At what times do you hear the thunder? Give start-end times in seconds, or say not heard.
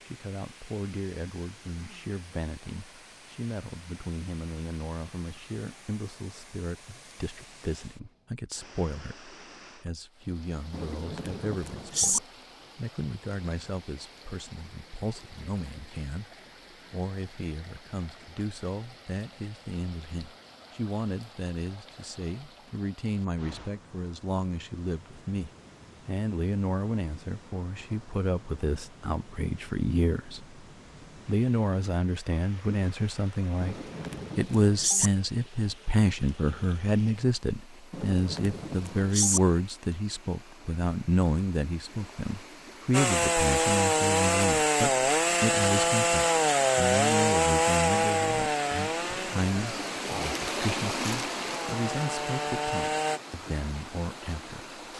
10.7-12.2, 33.6-35.1, 37.9-39.4.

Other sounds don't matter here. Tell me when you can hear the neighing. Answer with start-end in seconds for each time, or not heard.
not heard.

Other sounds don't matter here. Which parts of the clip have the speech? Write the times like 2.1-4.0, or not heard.
0.1-30.6, 31.2-33.8, 34.4-54.8.